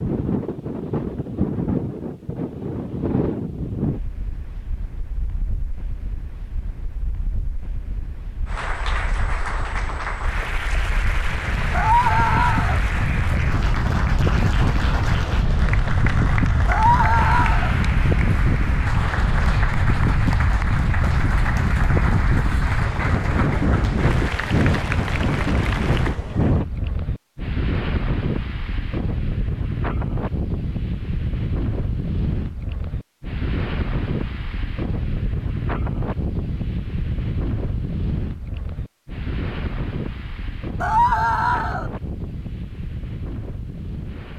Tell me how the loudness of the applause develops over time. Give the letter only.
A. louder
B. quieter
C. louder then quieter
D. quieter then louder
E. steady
E.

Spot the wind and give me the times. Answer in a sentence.
The wind can be heard from 0.0 to 44.3 s.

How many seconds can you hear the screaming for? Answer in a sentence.
You can hear the screaming for 3 seconds altogether.